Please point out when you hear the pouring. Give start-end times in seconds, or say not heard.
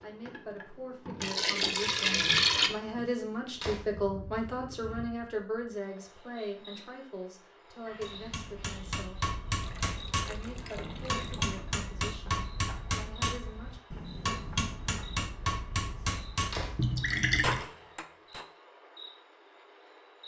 1.2-2.7, 9.6-11.6, 16.8-17.6.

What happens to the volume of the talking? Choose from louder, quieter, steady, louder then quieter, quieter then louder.
louder then quieter.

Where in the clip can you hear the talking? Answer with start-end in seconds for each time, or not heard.
0.0-9.2, 10.2-13.8.